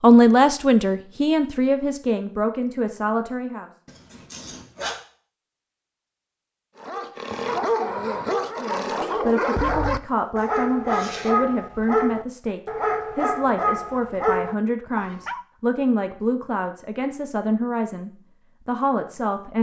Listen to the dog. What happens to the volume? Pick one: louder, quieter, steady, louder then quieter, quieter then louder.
steady.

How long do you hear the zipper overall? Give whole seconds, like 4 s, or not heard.
2 s.